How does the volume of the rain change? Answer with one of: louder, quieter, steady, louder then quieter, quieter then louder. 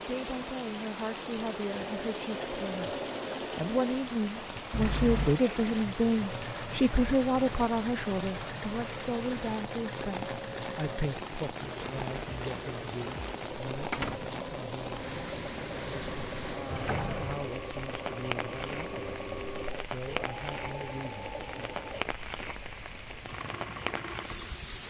steady.